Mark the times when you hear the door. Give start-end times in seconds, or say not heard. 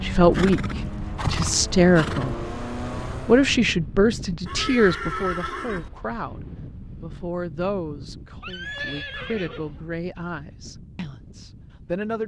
not heard.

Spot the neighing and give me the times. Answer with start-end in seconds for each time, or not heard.
0.3-2.4, 4.5-5.9, 8.4-9.8.